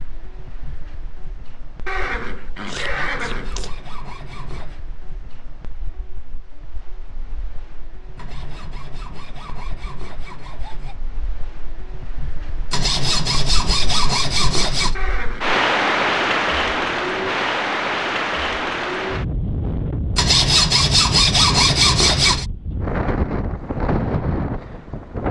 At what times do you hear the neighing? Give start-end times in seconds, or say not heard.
1.9-3.7, 14.9-15.6.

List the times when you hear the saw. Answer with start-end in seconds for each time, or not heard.
2.6-4.8, 8.2-10.9, 12.7-14.9, 20.1-22.4.